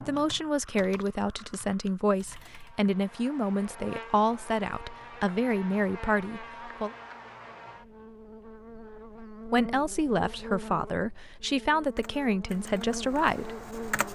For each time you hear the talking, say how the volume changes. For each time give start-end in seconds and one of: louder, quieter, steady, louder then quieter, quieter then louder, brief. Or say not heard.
0.1-6.9 steady
9.5-13.6 steady.